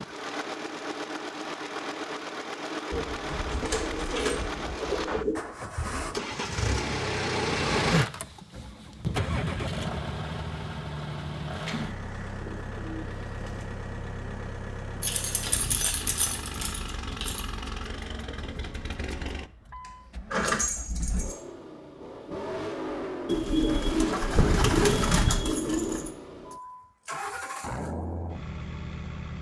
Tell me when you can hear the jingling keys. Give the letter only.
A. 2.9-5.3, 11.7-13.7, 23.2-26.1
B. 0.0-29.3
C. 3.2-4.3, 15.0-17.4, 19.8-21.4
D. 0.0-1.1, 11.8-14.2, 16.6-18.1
C.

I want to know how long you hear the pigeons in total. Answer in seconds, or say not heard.
7 s.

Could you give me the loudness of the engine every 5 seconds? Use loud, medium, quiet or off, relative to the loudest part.
medium, loud, medium, medium, medium, medium.